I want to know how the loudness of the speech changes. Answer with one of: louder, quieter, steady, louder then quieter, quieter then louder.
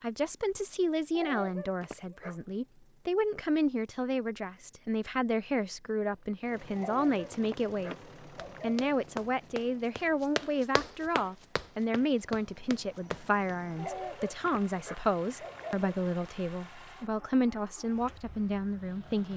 steady.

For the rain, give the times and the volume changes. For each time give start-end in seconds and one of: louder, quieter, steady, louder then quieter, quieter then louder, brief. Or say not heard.
not heard.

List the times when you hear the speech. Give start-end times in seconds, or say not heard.
0.0-8.0, 8.6-19.3.